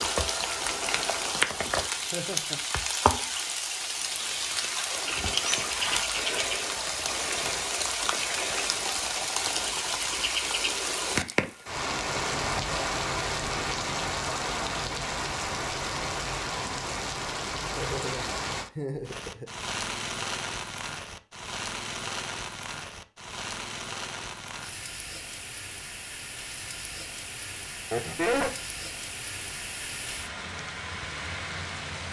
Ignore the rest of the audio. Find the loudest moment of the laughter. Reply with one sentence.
The loudest moment of the laughter is at 28 seconds.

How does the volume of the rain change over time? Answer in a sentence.
The volume of the rain goes down.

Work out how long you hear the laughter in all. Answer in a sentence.
You can hear the laughter for 3 seconds altogether.